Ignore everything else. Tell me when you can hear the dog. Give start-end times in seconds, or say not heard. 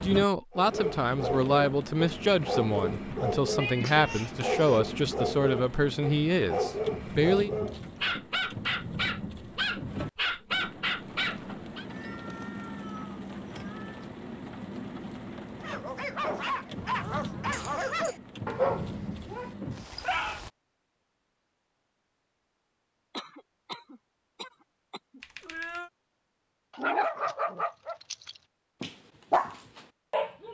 0.5-11.8, 15.6-20.4, 26.7-30.4.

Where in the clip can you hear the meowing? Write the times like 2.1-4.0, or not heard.
3.5-4.3, 11.8-13.9, 25.2-25.9.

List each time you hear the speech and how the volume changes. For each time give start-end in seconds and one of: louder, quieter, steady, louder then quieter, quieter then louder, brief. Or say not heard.
0.0-7.5 steady.